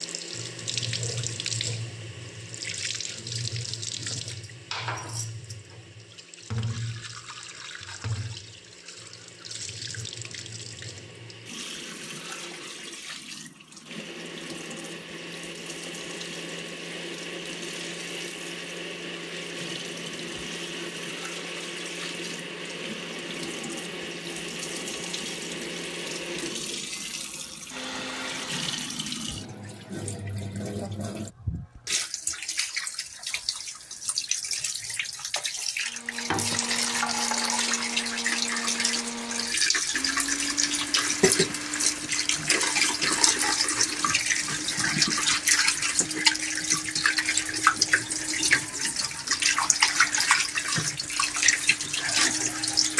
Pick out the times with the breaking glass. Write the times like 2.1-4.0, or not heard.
not heard.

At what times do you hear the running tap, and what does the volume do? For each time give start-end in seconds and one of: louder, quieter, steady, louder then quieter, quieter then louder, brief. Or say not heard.
0.0-52.9 quieter then louder.